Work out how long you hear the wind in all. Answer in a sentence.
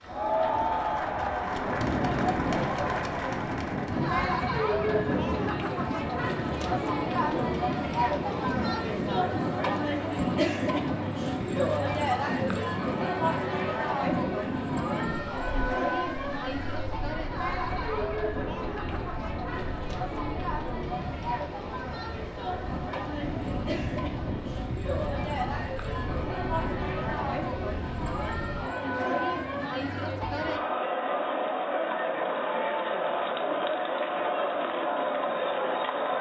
The wind can be heard for 29 seconds in total.